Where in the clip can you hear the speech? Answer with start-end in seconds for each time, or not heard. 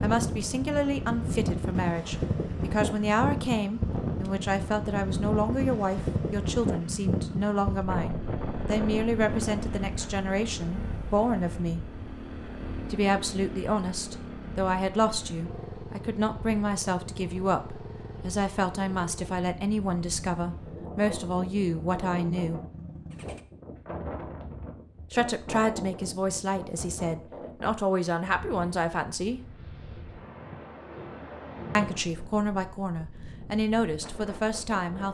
0.0-11.8, 12.9-22.6, 25.1-29.4, 31.8-35.0.